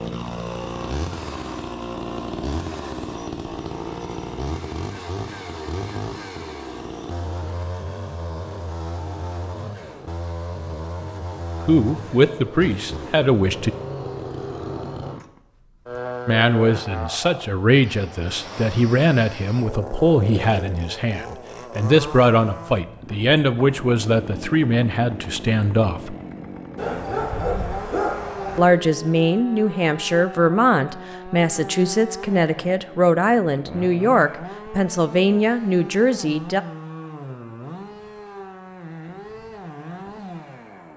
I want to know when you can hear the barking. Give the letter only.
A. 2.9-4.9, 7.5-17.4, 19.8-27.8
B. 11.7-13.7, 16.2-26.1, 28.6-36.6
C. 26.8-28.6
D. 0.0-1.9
C.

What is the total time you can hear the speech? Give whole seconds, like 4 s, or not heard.
20 s.